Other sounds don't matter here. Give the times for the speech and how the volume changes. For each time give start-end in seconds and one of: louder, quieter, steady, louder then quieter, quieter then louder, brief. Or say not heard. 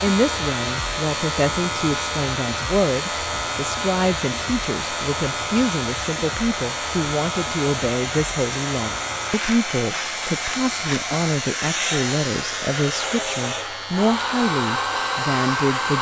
0.0-15.9 steady.